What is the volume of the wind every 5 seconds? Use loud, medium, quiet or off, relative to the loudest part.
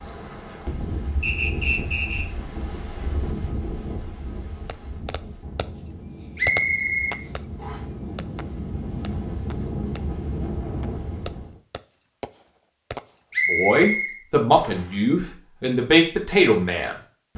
loud, loud, loud, off.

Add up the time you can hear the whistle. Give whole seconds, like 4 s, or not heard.
4 s.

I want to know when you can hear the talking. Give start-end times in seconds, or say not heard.
13.4-17.3.